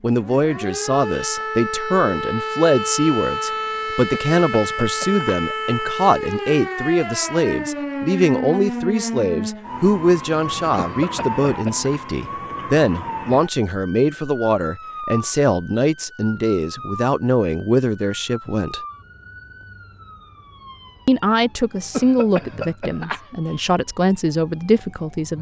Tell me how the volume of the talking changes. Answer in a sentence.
The loudness of the talking stays about the same.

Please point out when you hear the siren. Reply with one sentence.
The siren can be heard from 0.1 to 25.3 s.